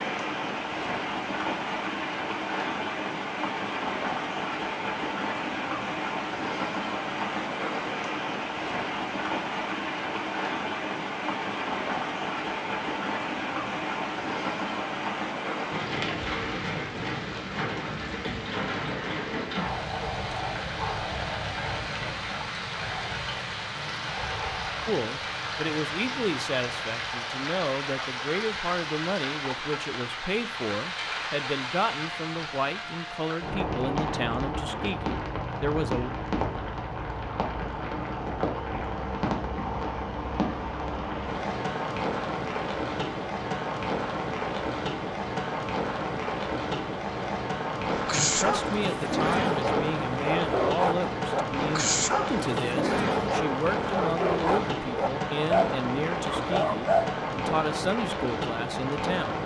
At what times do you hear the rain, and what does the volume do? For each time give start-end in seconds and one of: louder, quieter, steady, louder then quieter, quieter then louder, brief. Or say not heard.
0.0-59.4 steady.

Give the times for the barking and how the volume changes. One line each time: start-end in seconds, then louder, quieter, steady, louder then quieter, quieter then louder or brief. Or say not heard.
47.9-57.2 steady.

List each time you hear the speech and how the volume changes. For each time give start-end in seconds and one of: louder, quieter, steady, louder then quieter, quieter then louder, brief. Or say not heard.
24.9-36.1 steady
48.1-59.4 steady.